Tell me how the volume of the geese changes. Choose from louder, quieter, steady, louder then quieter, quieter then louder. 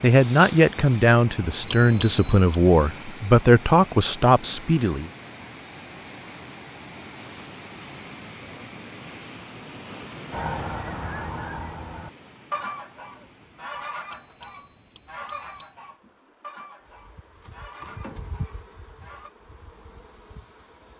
quieter.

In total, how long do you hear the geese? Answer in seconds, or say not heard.
9 s.